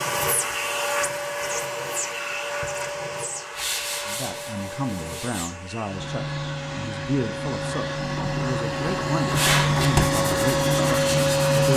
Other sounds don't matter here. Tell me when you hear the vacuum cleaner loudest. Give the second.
11 s.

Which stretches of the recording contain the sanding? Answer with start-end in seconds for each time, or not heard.
3.5-5.5, 9.3-11.4.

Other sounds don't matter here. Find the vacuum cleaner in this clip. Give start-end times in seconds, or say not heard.
0.0-11.7.